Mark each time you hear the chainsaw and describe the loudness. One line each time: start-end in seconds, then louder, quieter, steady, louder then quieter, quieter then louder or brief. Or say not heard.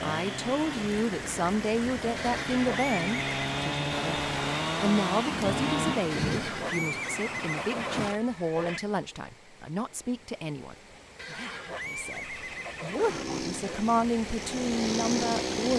0.0-6.2 louder
12.9-15.7 brief.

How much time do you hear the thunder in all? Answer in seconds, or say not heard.
4 s.